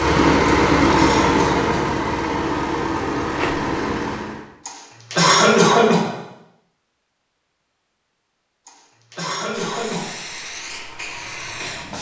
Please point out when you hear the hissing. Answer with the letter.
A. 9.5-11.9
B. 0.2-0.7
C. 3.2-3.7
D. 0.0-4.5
A.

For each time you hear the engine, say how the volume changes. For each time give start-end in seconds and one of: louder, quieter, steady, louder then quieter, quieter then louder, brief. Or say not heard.
0.0-4.5 quieter.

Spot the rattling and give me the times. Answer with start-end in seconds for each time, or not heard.
3.2-3.7.